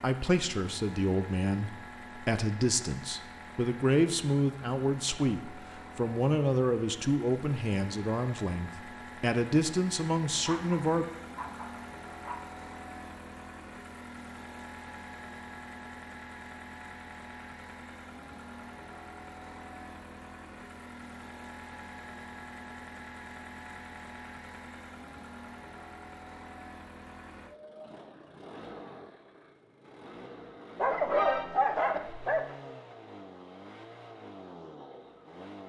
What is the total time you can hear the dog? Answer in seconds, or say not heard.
4 s.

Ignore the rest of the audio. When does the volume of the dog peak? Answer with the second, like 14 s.
31 s.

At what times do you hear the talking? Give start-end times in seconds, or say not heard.
0.0-11.1.